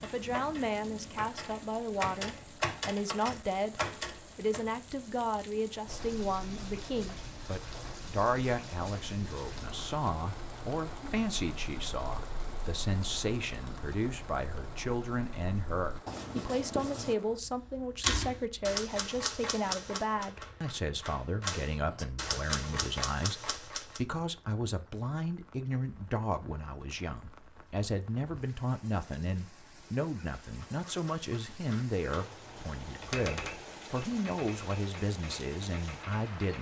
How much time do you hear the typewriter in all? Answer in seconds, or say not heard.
17 s.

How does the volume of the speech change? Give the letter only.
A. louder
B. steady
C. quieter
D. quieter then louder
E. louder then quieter
B.